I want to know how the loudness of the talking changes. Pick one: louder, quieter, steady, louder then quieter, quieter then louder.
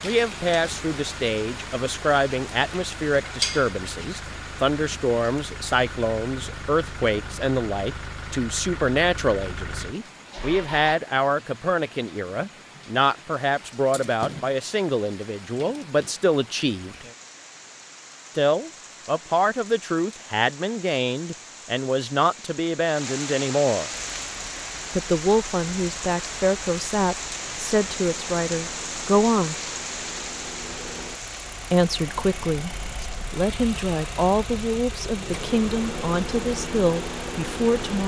steady.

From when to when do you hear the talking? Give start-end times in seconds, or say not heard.
0.0-16.9, 18.4-23.9, 24.9-29.6, 31.7-38.0.